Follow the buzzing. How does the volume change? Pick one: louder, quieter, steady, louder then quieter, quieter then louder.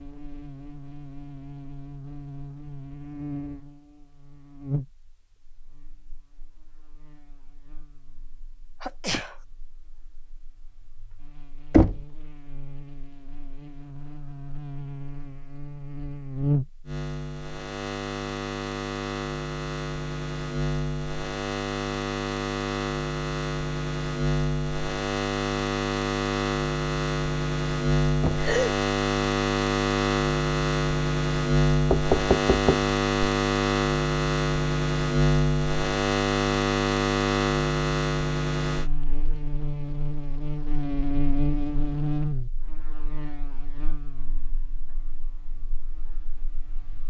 louder then quieter.